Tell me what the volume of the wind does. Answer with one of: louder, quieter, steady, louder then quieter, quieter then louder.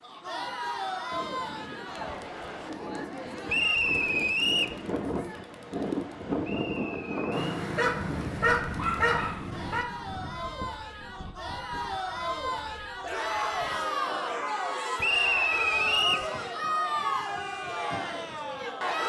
louder then quieter.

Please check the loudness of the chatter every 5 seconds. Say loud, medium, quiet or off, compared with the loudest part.
medium, quiet, loud, loud.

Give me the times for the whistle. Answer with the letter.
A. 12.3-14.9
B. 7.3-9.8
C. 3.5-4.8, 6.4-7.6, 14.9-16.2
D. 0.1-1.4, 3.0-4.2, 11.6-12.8
C.